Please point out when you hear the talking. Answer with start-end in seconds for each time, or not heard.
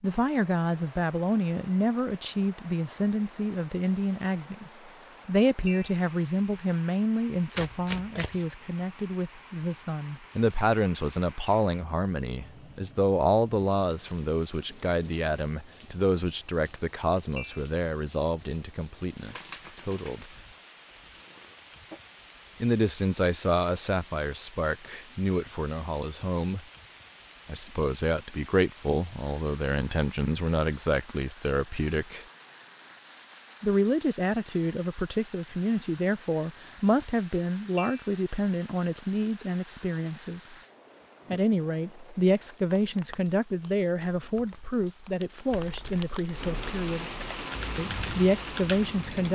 0.0-20.2, 22.6-26.6, 27.4-32.2, 33.6-40.5, 41.3-47.0, 47.8-49.2.